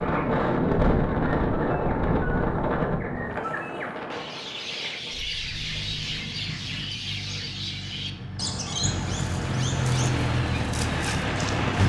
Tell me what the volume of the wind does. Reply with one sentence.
The volume of the wind goes down.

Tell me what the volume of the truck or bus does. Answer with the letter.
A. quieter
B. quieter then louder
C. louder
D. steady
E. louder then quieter
C.